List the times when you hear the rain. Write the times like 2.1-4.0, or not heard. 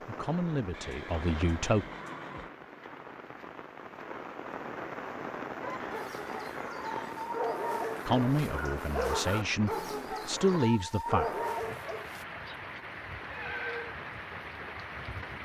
0.0-15.4.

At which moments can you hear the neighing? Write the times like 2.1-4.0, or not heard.
0.7-2.5, 5.8-7.2, 13.2-13.9.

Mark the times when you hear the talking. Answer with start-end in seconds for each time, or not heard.
0.1-1.9, 8.1-11.3.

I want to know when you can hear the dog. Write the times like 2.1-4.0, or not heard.
5.6-12.2.